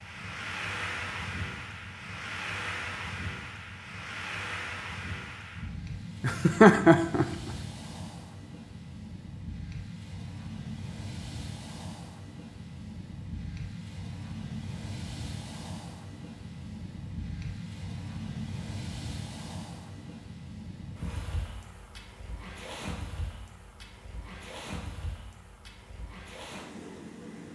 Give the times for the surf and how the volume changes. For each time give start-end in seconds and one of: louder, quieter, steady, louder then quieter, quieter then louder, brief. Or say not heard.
0.0-27.4 quieter.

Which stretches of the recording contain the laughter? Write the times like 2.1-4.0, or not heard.
6.2-7.5.